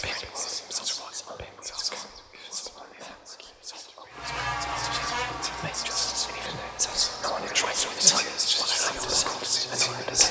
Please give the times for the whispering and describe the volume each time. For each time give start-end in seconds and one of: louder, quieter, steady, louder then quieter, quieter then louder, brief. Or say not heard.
0.0-10.2 quieter then louder.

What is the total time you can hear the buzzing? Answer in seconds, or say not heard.
6 s.